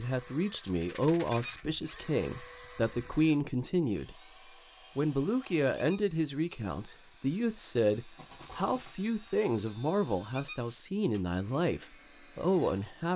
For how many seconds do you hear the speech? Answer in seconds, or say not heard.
12 s.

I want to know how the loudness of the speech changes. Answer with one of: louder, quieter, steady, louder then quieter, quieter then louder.
steady.